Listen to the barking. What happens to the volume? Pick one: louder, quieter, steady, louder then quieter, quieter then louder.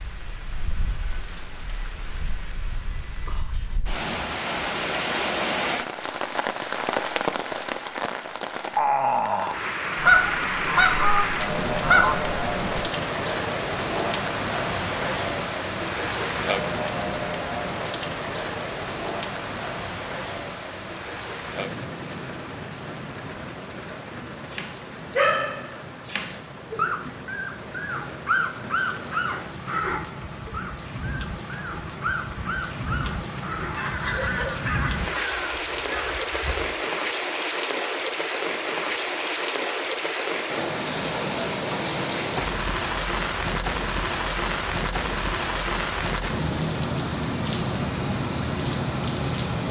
quieter.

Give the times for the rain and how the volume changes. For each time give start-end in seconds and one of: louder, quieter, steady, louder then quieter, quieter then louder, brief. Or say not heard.
0.0-49.6 quieter then louder.